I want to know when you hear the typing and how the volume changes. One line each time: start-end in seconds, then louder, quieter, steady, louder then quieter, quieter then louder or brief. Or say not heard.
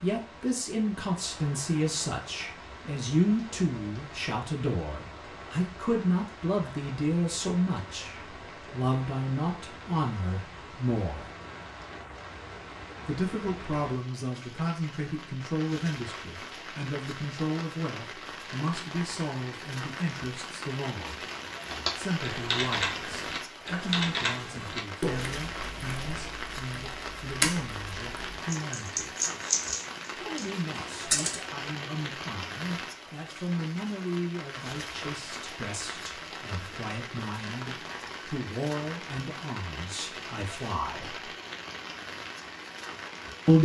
21.6-31.4 quieter then louder.